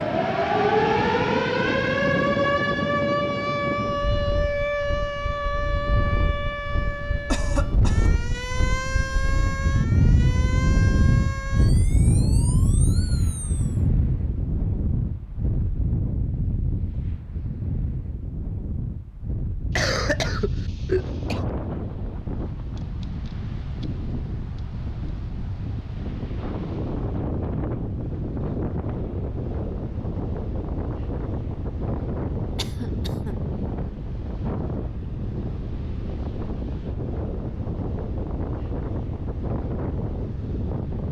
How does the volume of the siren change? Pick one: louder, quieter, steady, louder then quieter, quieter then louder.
quieter.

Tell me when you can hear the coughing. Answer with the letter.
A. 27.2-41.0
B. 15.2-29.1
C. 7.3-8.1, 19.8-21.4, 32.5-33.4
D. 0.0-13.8
C.